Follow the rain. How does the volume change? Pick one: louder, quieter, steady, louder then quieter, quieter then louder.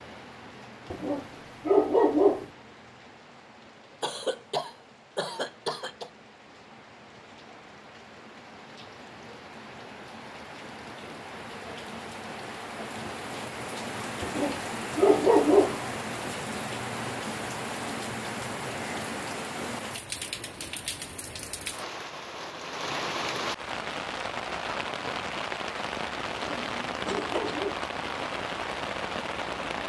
louder.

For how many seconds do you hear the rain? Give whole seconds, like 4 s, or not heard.
30 s.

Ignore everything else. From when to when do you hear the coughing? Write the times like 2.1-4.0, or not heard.
4.0-6.1, 26.6-27.6.